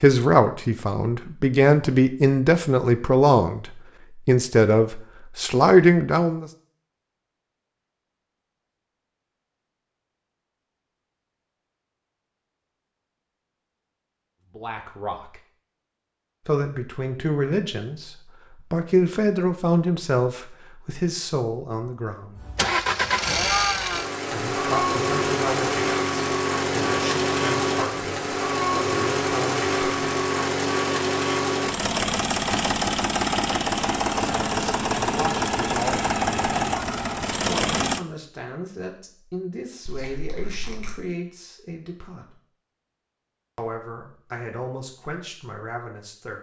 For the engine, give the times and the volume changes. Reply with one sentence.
You can hear the engine from 22.4 to 38.0 s, at a steady volume.